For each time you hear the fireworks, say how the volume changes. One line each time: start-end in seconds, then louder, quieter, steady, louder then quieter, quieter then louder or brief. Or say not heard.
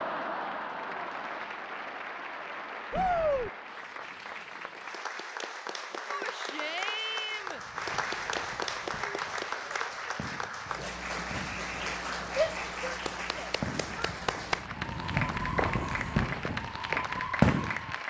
7.5-17.9 louder.